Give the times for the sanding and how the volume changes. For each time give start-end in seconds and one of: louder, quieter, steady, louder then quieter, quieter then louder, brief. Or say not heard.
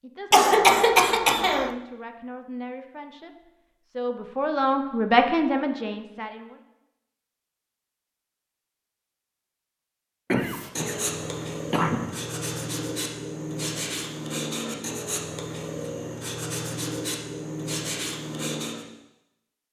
10.4-18.9 steady.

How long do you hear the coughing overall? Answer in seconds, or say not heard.
3 s.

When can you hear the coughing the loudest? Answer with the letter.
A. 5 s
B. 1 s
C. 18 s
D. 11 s
B.